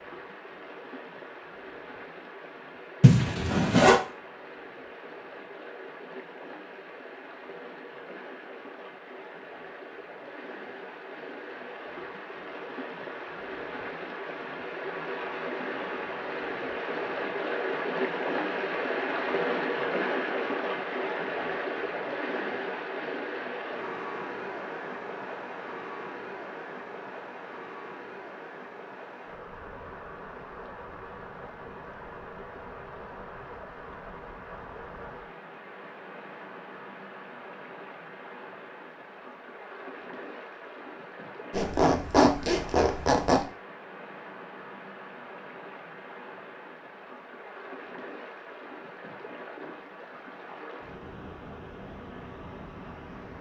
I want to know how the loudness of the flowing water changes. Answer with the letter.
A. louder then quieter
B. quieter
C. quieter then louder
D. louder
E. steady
A.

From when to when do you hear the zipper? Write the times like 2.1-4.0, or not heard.
3.0-4.0, 41.5-43.5.